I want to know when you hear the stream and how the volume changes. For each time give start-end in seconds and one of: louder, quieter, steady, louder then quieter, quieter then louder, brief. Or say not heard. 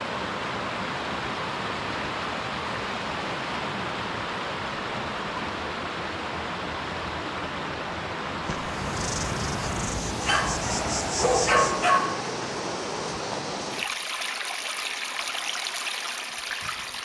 0.0-17.0 steady.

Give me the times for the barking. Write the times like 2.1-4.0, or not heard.
10.2-12.2.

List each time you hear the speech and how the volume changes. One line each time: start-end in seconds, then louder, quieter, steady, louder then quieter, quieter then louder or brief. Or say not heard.
not heard.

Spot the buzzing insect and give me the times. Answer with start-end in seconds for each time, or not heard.
8.4-11.9.